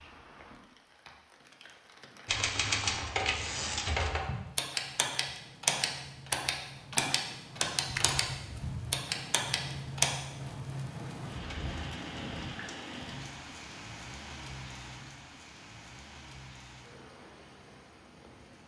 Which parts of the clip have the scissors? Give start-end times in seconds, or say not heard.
7.8-9.0.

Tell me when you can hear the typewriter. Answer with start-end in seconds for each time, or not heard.
2.2-10.1.